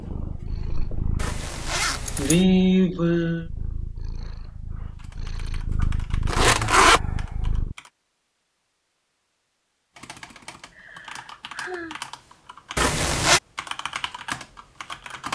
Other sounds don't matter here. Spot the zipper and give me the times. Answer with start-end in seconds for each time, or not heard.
1.2-2.4, 6.2-7.0, 12.8-13.4.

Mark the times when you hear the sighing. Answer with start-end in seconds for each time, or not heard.
2.1-3.5, 5.7-7.5, 10.7-11.9.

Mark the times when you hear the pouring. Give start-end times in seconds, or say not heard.
not heard.